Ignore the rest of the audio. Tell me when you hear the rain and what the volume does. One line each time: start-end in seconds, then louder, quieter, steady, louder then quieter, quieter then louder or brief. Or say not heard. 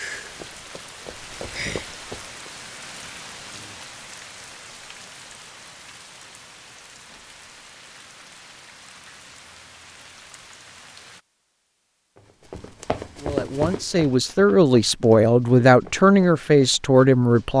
0.0-11.2 quieter.